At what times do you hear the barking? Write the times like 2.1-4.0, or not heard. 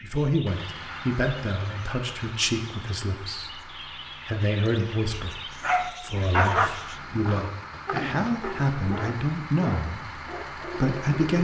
5.6-11.3.